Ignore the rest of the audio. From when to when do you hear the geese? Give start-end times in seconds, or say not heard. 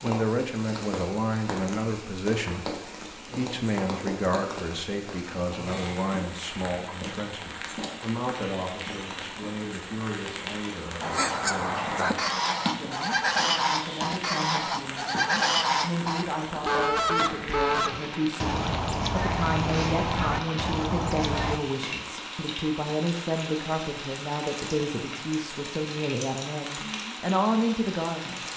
11.0-21.6.